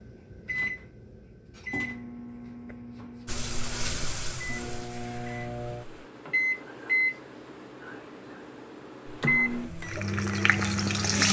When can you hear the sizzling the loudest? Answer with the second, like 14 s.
11 s.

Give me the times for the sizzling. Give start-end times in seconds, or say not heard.
3.2-6.1, 9.1-11.2.